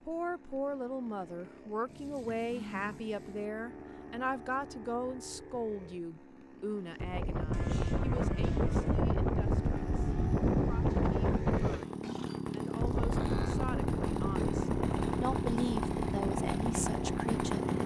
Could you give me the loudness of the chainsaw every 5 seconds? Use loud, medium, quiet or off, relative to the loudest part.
quiet, quiet, loud, loud.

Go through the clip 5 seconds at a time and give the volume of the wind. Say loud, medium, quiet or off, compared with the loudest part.
off, loud, loud, medium.